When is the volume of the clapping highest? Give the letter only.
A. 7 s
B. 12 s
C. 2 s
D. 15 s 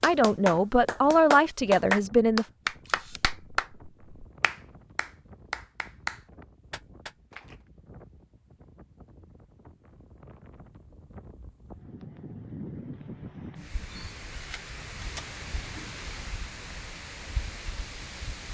C.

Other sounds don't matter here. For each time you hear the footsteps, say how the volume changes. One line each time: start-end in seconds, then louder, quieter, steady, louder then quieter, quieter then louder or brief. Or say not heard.
not heard.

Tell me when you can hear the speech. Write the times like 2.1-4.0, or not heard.
0.0-2.5.